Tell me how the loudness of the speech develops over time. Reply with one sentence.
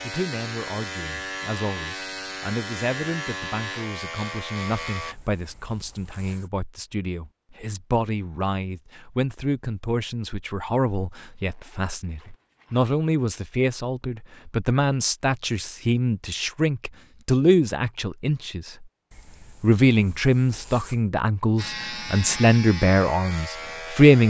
The volume of the speech goes up.